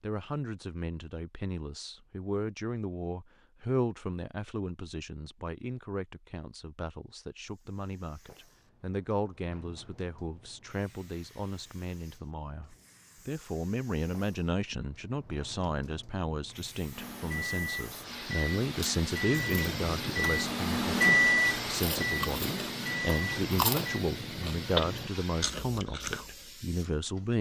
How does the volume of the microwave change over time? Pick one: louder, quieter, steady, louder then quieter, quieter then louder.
louder then quieter.